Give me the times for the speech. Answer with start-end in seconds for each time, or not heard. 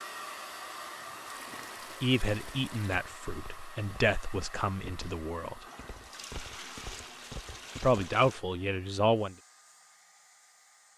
2.0-5.6, 7.8-9.3.